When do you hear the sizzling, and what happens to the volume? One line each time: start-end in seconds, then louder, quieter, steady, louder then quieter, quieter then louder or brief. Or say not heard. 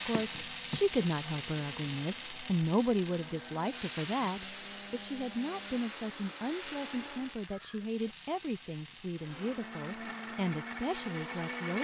0.0-11.7 quieter.